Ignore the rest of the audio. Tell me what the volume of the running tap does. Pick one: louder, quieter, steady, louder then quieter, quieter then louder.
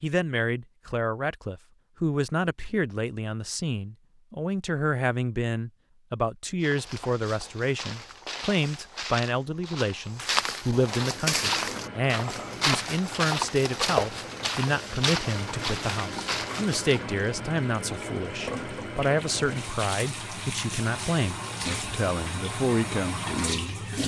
louder.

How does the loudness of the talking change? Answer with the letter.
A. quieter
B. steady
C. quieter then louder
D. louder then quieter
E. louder
B.